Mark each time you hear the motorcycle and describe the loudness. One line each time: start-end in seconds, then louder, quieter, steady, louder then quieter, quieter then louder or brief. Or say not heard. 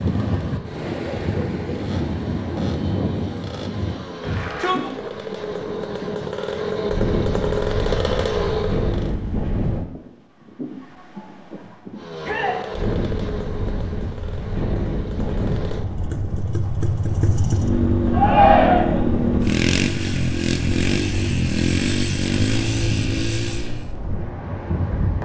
0.0-9.2 louder
11.9-23.9 louder.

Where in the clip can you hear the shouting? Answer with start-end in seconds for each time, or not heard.
4.2-4.9, 12.2-12.6, 18.1-19.1.